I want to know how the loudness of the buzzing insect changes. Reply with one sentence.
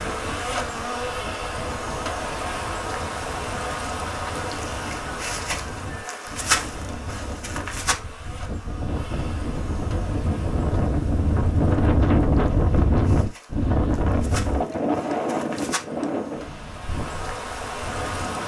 The volume of the buzzing insect goes down, then up.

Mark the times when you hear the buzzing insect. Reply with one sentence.
The buzzing insect can be heard from 0.0 to 18.4 s.